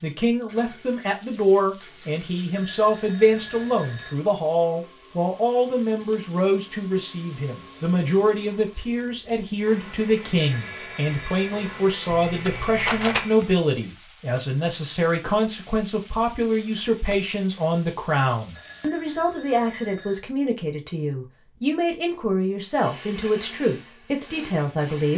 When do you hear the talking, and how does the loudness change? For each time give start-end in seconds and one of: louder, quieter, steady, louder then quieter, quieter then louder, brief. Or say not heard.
0.0-25.1 steady.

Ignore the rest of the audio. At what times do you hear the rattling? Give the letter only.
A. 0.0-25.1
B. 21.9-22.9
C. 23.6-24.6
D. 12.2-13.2
D.